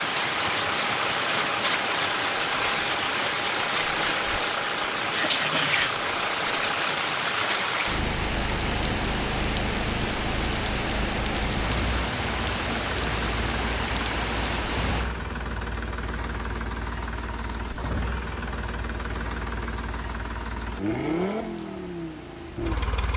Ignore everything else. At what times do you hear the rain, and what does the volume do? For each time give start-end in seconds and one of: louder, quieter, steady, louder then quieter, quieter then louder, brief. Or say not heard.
0.0-23.1 quieter.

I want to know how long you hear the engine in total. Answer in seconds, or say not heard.
23 s.